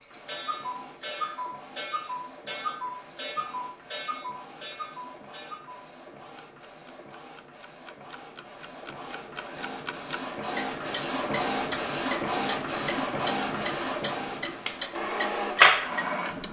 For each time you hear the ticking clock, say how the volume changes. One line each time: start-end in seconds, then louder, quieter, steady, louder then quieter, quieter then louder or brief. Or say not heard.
0.0-16.4 quieter then louder.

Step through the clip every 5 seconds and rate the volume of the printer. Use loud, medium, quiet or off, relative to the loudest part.
quiet, quiet, medium, loud.